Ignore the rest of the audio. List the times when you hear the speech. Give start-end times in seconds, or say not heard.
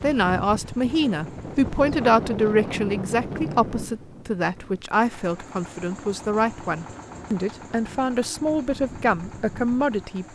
0.0-10.3.